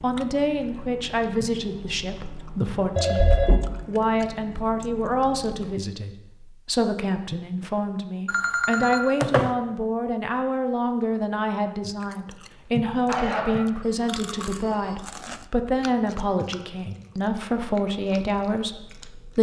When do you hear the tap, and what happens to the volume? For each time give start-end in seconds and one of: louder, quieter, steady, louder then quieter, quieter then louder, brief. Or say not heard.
not heard.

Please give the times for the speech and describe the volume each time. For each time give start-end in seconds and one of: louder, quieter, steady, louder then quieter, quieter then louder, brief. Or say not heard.
0.0-19.3 steady.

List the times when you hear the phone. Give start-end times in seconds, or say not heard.
3.0-3.8, 8.2-9.5, 13.1-15.0.